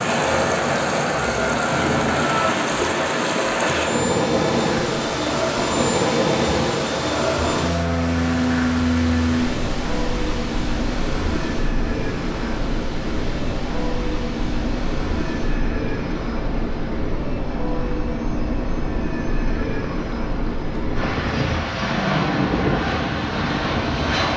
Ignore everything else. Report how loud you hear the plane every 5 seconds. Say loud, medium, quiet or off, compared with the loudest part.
loud, loud, medium, medium, loud.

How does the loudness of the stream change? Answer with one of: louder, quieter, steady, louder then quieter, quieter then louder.
quieter.